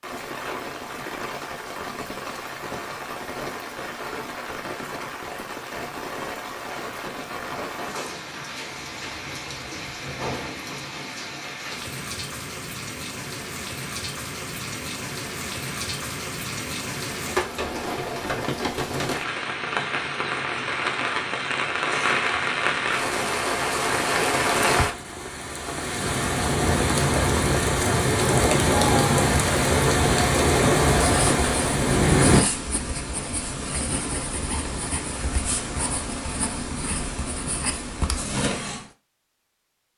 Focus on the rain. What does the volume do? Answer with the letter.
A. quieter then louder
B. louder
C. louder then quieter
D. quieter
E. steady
B.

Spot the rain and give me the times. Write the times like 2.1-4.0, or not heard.
0.0-32.5.